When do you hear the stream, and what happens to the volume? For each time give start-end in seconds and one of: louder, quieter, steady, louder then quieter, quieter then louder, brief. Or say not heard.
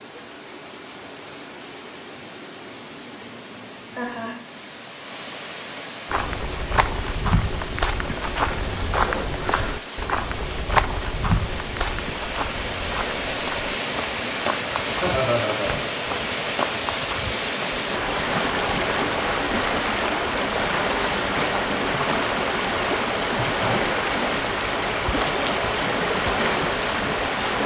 0.0-27.6 louder.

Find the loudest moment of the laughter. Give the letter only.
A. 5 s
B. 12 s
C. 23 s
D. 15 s
D.